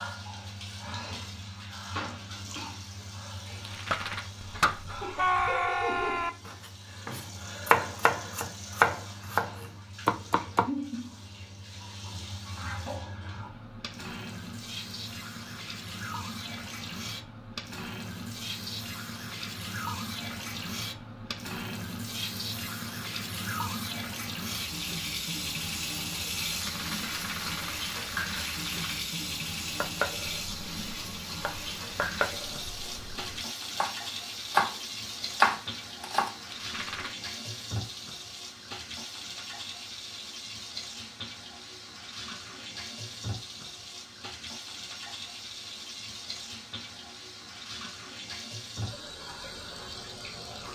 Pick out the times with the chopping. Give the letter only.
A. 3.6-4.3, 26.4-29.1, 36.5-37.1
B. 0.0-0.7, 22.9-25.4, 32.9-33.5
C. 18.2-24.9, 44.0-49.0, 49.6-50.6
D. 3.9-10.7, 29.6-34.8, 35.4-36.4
D.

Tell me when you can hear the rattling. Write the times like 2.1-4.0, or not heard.
3.6-4.3, 26.4-29.1, 36.5-37.1.